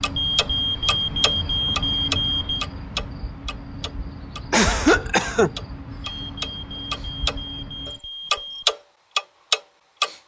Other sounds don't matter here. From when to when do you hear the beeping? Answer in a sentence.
The beeping can be heard from 0.1 to 2.6 s and from 6.0 to 8.8 s.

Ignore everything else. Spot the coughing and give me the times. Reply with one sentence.
The coughing can be heard from 4.5 to 5.5 s.